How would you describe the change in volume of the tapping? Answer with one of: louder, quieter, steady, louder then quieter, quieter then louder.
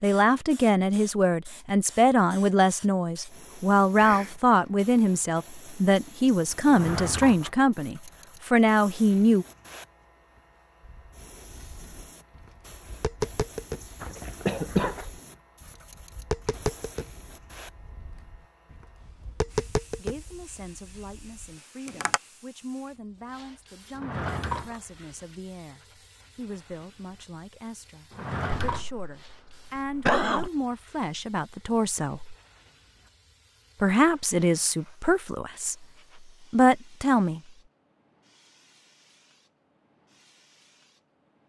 louder then quieter.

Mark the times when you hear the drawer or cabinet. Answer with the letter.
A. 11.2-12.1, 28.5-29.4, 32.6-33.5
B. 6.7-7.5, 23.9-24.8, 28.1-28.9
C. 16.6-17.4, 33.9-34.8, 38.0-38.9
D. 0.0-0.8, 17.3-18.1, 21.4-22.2
B.